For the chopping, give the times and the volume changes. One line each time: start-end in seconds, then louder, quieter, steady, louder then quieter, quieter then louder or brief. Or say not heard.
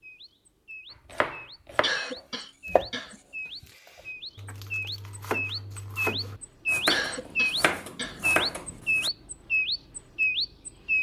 1.1-2.9 brief
3.6-9.1 louder.